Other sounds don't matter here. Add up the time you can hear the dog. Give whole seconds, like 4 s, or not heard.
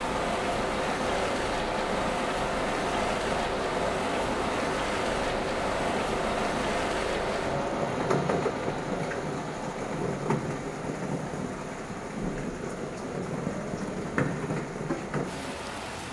not heard.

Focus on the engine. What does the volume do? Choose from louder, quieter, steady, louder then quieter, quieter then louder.
quieter.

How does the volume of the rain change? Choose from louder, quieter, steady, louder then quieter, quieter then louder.
steady.